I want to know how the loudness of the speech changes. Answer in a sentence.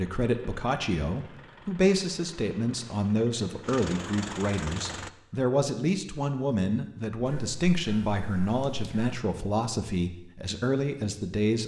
The loudness of the speech stays about the same.